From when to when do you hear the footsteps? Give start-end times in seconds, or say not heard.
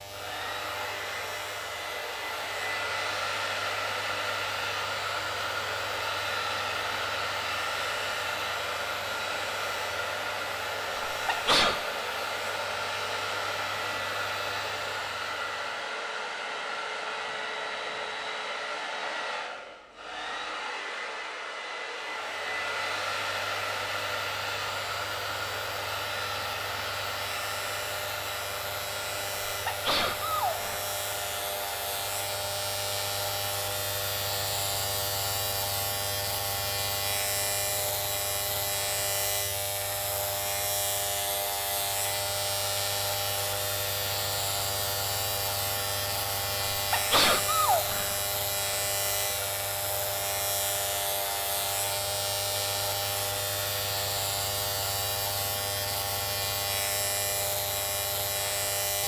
not heard.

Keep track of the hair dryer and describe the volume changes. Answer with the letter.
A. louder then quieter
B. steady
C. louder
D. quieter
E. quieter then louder
D.